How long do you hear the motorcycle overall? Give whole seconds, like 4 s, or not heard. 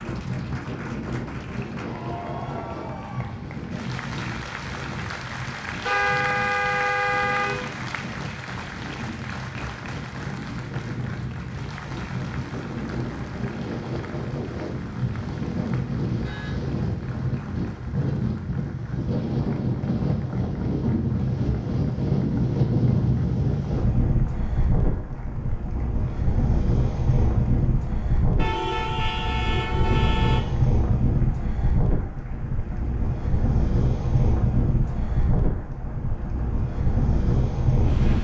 not heard.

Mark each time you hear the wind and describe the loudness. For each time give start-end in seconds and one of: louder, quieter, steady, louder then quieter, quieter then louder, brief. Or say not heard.
0.0-38.1 louder.